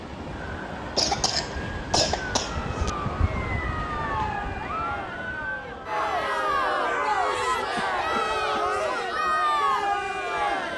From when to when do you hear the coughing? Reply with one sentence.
The coughing can be heard from 0.9 to 2.9 s and from 7.5 to 8.7 s.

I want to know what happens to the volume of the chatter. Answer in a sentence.
The volume of the chatter goes up.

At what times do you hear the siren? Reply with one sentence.
You can hear the siren from 0.0 to 10.6 s.